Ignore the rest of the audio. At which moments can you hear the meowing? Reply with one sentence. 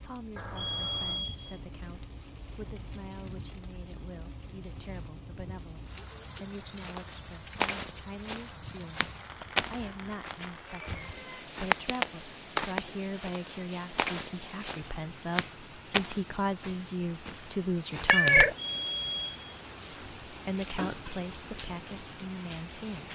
You can hear the meowing from 0.3 to 1.2 s, from 9.7 to 11.4 s and from 18.1 to 18.6 s.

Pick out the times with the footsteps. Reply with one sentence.
The footsteps can be heard from 6.8 to 18.4 s.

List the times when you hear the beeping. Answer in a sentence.
The beeping can be heard from 0.6 to 1.6 s and from 18.6 to 20.1 s.